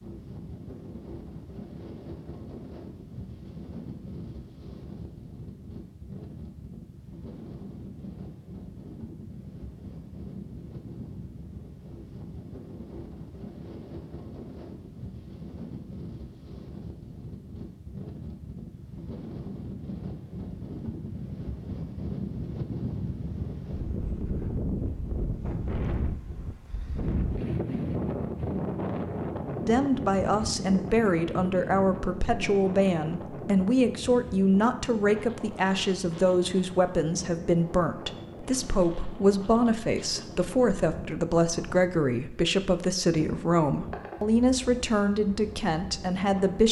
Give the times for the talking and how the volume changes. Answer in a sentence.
The talking can be heard from 29.6 to 46.6 s, at a steady volume.